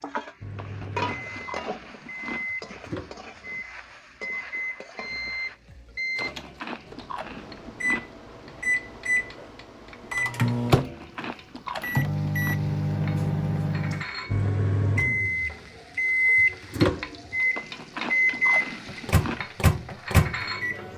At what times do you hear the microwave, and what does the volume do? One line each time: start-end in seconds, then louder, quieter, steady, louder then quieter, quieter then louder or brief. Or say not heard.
0.0-20.9 louder.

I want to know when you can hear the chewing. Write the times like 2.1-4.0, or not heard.
0.6-2.5, 6.2-8.1, 10.8-12.6, 17.6-19.4.